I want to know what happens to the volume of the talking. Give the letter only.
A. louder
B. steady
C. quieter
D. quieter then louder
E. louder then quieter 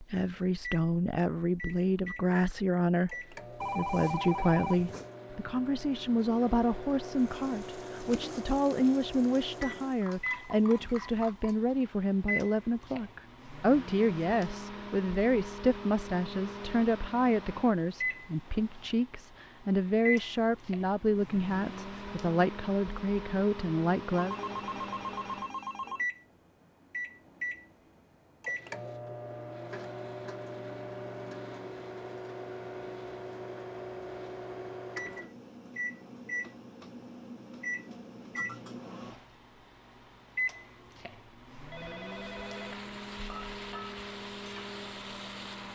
B.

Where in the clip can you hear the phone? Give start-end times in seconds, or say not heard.
3.6-5.1, 24.1-26.1, 41.7-42.8.